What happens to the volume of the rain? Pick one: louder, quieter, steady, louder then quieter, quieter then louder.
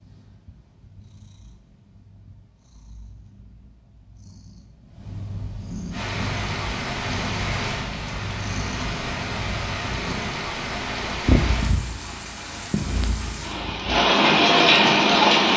quieter then louder.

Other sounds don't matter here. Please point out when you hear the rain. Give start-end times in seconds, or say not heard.
5.9-15.5.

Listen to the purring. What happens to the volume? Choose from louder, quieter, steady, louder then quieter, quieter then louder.
louder.